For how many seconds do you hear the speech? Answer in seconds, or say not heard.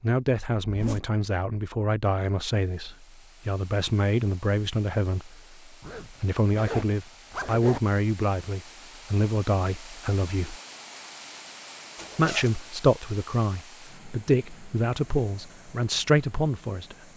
15 s.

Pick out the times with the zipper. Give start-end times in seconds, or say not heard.
0.6-1.1, 5.8-7.8, 11.9-12.6.